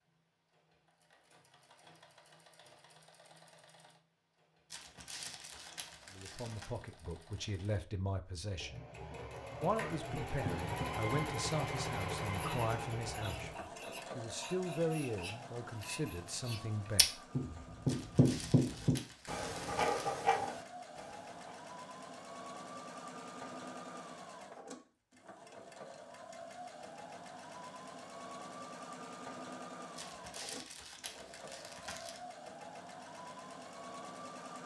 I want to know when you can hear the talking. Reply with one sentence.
The talking can be heard from 6.1 to 8.8 s and from 9.6 to 17.2 s.